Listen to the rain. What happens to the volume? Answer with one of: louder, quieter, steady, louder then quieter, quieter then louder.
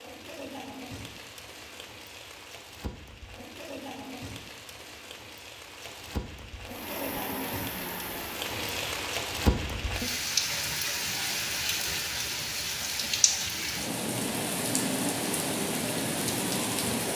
louder.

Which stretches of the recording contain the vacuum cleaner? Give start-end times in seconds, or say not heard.
6.7-8.9.